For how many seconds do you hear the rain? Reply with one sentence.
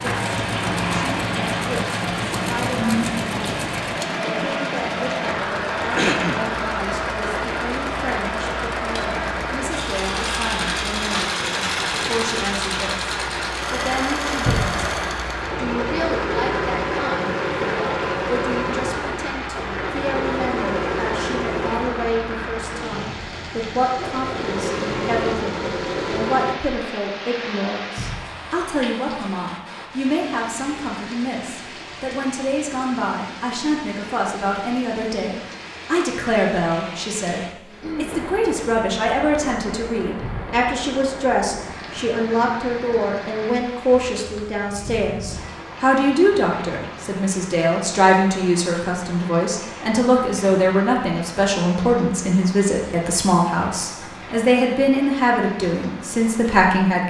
You can hear the rain for 57 seconds altogether.